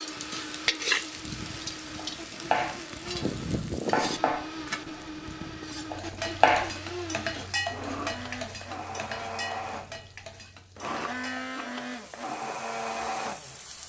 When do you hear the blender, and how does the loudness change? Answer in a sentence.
The blender can be heard from 0.0 to 13.8 s, getting louder.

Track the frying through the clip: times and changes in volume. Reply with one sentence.
You can hear the frying from 0.0 to 13.8 s, getting quieter.